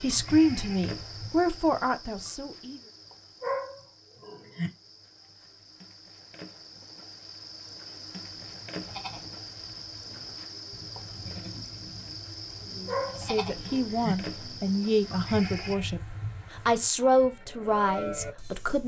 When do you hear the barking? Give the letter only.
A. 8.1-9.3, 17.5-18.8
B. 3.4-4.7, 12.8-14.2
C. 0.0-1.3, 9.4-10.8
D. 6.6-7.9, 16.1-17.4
B.